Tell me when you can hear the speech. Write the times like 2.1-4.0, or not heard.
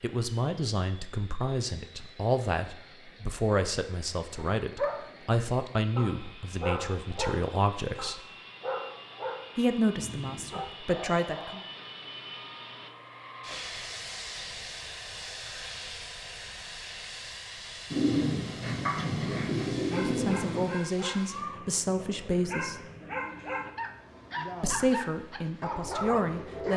0.0-8.2, 9.6-11.6, 19.9-22.9, 24.6-26.7.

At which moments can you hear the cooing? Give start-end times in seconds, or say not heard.
17.9-20.8.